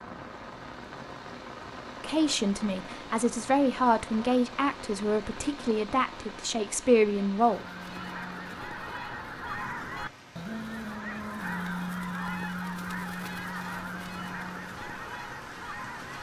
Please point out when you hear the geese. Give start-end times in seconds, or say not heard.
7.3-16.1.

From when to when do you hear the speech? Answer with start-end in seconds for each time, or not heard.
2.0-7.7.